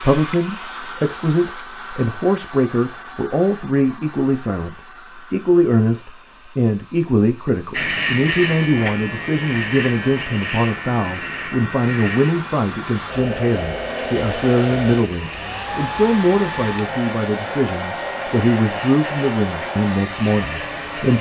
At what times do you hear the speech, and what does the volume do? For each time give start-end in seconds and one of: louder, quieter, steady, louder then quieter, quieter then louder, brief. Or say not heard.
0.0-21.1 steady.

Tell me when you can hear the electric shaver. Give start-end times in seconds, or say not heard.
7.7-21.1.